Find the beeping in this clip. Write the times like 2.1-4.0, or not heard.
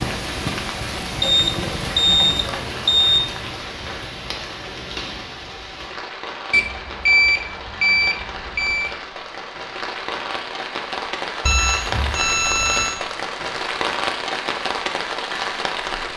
1.2-3.2, 6.5-8.9, 11.4-12.9.